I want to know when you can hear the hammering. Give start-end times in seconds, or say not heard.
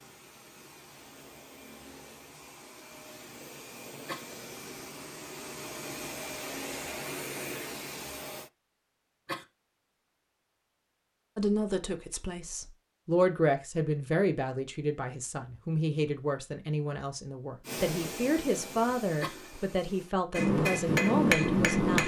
20.4-22.0.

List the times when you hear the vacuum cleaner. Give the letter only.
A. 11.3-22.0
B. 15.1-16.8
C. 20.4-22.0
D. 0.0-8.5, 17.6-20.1
D.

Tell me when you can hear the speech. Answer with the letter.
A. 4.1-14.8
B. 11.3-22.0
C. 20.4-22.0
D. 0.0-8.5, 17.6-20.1
B.